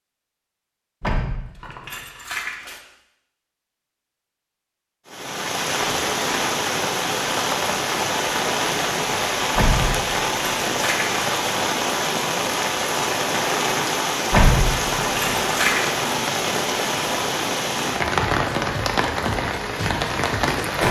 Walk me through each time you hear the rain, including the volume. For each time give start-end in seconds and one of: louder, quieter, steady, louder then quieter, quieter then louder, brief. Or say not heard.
5.0-20.8 steady.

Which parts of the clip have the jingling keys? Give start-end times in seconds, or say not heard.
1.0-2.8, 9.6-11.2, 14.3-15.8.